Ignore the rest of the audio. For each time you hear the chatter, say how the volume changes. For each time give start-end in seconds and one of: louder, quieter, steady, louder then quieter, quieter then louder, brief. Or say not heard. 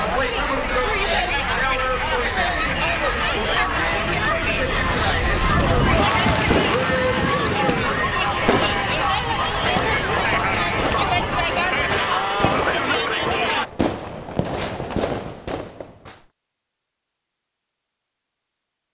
0.0-13.7 steady.